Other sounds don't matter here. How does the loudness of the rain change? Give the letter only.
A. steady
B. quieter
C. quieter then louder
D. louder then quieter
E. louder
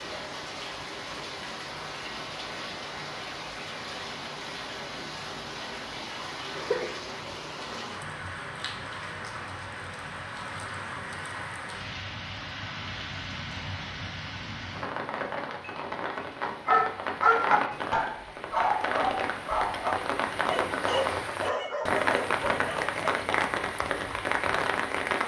E.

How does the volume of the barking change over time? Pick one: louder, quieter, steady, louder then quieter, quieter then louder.
quieter.